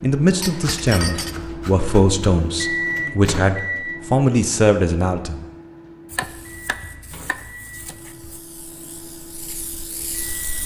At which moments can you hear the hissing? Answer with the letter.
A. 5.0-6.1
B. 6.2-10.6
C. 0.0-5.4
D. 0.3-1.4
B.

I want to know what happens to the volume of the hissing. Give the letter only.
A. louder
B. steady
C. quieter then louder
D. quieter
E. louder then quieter
A.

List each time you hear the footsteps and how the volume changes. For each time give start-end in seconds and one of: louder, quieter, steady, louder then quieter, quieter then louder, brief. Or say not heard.
not heard.